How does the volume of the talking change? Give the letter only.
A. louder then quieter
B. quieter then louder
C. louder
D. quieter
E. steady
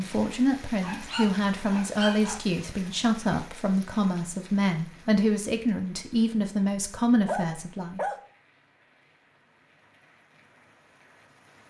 E.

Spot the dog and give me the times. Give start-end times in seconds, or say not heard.
0.8-2.4, 7.2-8.2.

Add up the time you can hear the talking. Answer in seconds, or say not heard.
8 s.